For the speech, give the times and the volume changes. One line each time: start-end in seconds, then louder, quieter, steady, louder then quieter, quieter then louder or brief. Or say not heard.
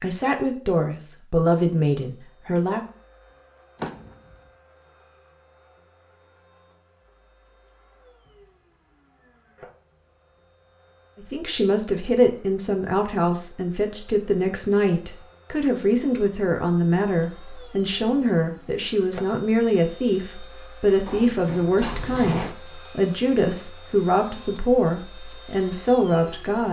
0.0-2.8 brief
11.2-26.6 steady.